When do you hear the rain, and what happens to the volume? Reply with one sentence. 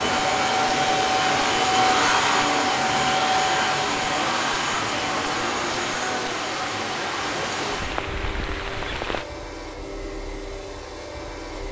The rain can be heard from 0.0 to 9.2 s, at a steady volume.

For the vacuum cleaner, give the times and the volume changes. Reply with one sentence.
The vacuum cleaner can be heard from 0.0 to 11.6 s, getting quieter.